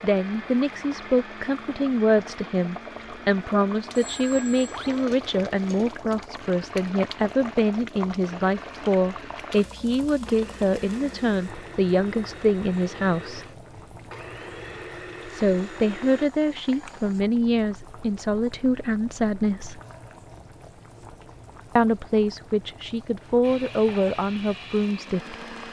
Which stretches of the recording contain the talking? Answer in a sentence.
You can hear the talking from 0.0 to 13.4 s, from 15.3 to 19.8 s and from 21.8 to 25.4 s.